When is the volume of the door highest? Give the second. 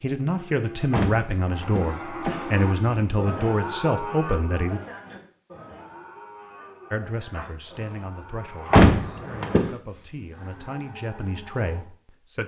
9 s.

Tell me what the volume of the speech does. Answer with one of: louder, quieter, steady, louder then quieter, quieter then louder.
quieter then louder.